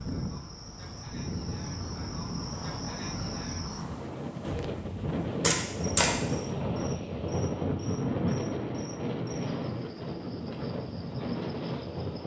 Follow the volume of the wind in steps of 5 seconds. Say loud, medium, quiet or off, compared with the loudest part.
medium, loud, loud.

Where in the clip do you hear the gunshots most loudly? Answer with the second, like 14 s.
6 s.